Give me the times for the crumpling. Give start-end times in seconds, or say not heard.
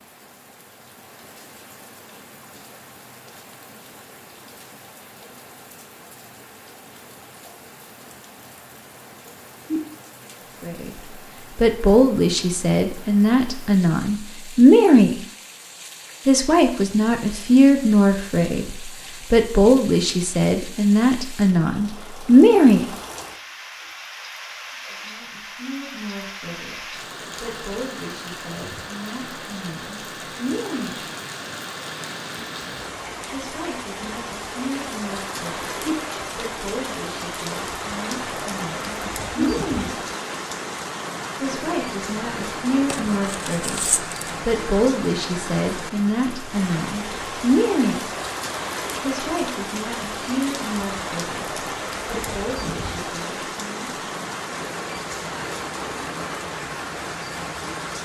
42.9-44.4.